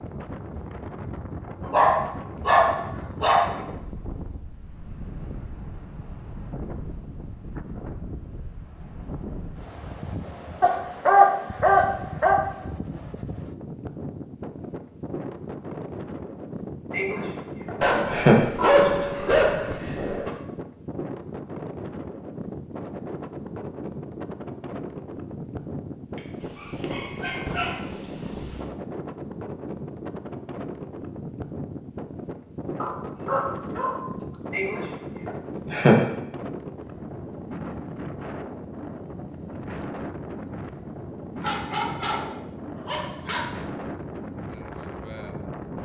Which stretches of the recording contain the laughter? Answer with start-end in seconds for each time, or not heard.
16.9-19.1, 34.5-36.0.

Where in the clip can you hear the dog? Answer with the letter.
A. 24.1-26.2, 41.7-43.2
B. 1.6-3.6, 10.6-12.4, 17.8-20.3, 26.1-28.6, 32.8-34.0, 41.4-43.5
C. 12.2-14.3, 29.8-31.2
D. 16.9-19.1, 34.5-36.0
B.